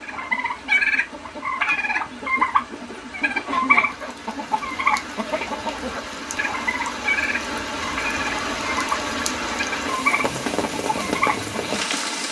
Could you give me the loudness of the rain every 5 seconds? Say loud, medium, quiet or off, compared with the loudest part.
quiet, loud, loud.